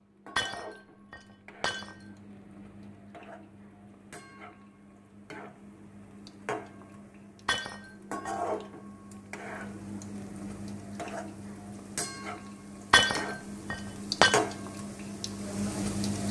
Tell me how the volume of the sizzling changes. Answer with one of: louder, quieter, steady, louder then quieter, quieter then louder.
louder.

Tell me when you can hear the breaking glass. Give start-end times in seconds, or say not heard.
0.3-2.0, 7.5-8.3, 12.9-14.4.